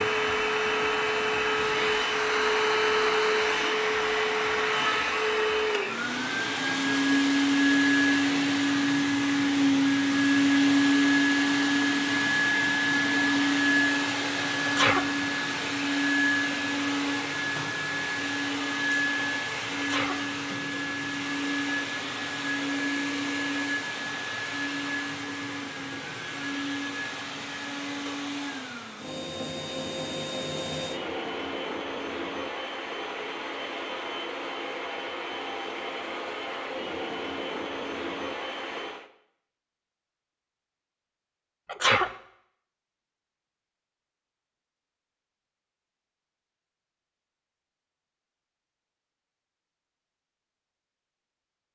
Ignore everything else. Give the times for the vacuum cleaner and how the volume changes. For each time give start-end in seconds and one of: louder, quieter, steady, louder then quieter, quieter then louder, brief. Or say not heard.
0.0-39.1 quieter.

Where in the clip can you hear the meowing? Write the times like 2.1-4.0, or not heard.
not heard.